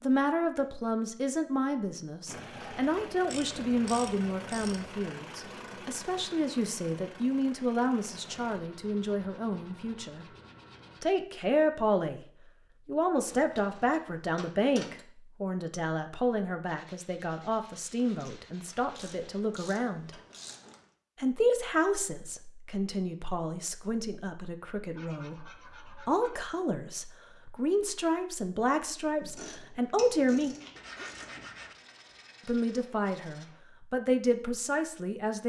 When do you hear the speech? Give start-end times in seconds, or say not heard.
0.0-10.2, 11.0-12.2, 12.8-20.1, 21.1-30.6, 32.5-35.4.